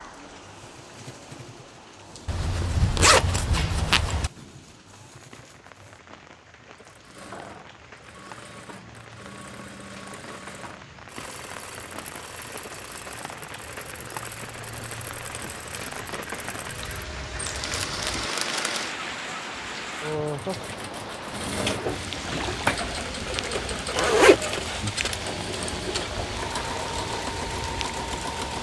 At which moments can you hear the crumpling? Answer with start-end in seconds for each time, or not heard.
17.4-18.8.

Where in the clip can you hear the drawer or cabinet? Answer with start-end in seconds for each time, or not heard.
not heard.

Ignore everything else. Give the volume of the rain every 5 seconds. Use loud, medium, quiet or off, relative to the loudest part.
quiet, quiet, medium, loud, loud, loud.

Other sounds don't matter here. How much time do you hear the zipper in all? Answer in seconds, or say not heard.
4 s.